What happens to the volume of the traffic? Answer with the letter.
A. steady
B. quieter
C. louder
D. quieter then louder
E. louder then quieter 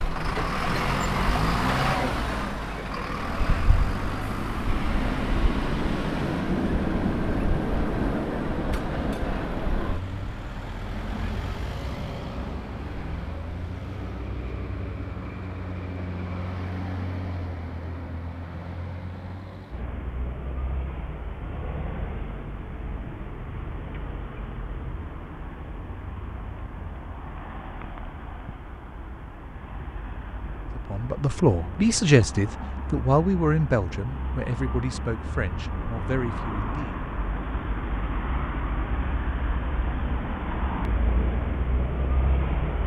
D.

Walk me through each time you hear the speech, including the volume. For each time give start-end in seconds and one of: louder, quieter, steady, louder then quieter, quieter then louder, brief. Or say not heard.
30.8-37.1 quieter.